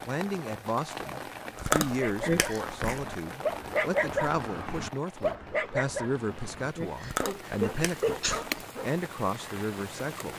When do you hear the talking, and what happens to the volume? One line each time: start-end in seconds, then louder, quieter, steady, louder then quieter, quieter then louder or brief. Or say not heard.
0.0-10.3 steady.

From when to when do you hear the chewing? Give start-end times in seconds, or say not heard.
1.6-3.1, 7.0-8.5.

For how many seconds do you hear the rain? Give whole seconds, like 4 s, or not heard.
10 s.